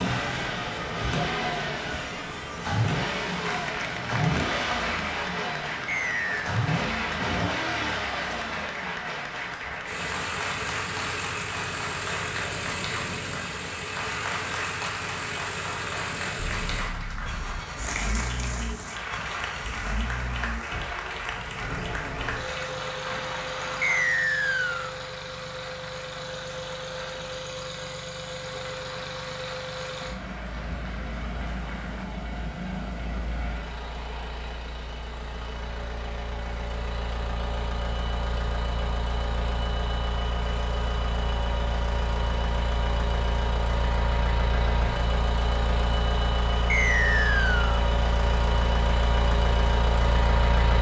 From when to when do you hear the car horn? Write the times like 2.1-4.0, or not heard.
16.4-17.7.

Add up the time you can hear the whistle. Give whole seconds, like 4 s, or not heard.
3 s.